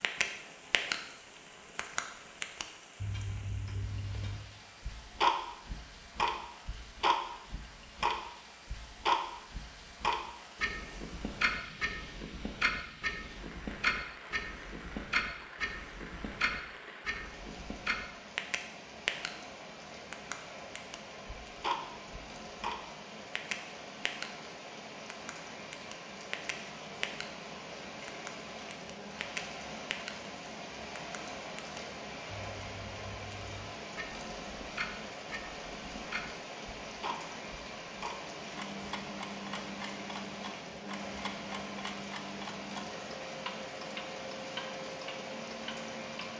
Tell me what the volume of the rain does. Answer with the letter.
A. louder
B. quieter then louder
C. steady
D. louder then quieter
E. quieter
A.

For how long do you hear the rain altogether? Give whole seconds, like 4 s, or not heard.
46 s.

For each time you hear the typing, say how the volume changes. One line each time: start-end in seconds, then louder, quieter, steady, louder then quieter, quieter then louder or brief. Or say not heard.
not heard.